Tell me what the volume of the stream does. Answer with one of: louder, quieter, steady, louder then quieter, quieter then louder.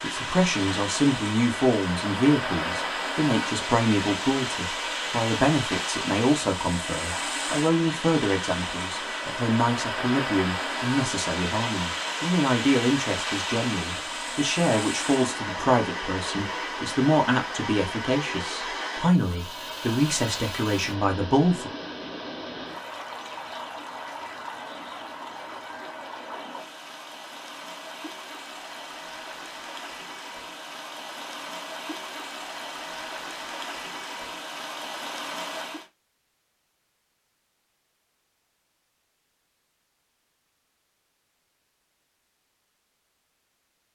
quieter.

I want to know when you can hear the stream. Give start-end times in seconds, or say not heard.
0.0-35.9.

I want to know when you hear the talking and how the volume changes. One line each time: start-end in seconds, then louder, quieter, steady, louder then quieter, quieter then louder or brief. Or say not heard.
0.0-21.7 steady.